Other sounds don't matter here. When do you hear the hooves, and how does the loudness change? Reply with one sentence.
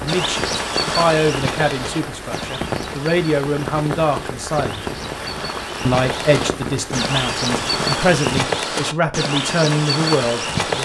You can hear the hooves from 0.1 to 10.8 s, getting quieter then louder.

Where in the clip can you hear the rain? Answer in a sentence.
You can hear the rain from 0.0 to 8.4 s.